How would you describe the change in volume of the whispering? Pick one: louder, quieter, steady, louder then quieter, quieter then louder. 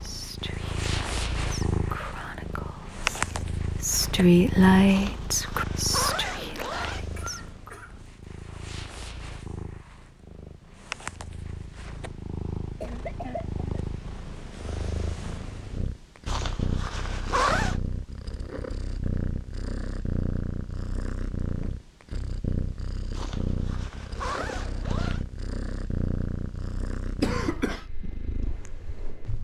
louder then quieter.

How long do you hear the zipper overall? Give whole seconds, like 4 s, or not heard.
6 s.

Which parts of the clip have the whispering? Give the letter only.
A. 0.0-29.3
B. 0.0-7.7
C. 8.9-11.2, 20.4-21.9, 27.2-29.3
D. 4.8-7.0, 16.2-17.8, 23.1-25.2
B.